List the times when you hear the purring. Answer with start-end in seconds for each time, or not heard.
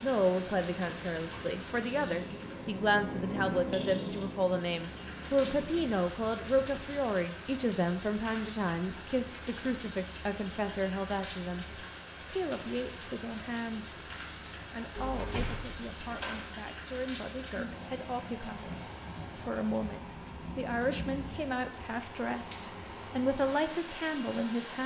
0.0-7.0.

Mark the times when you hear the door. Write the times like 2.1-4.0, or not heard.
14.9-16.6.